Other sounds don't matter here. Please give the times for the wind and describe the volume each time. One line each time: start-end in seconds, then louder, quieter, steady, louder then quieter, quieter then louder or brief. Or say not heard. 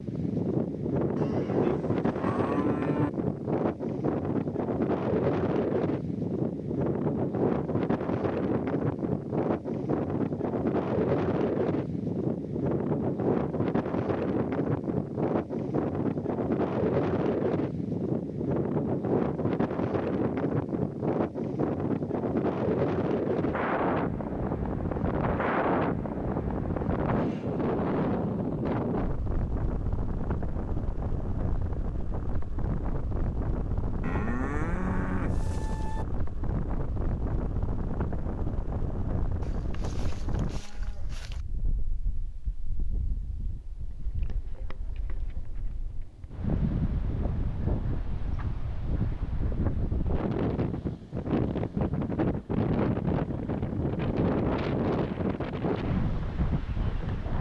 0.0-57.3 quieter then louder.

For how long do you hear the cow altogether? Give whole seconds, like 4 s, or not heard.
6 s.